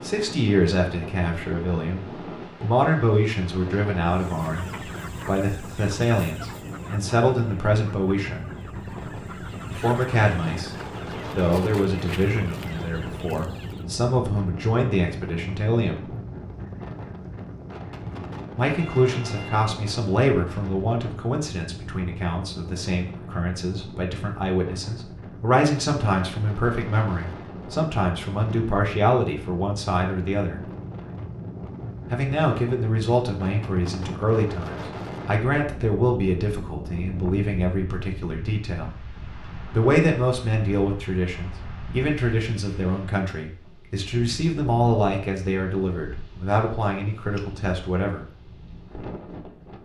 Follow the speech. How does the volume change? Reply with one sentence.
The loudness of the speech stays about the same.